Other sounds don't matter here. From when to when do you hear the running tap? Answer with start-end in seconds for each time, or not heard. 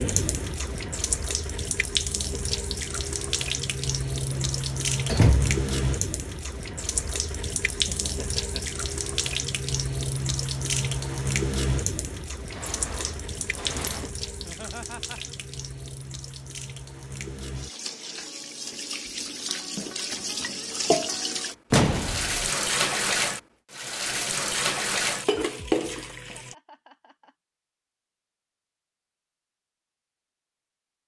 0.0-26.6.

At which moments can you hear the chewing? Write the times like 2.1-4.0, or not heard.
not heard.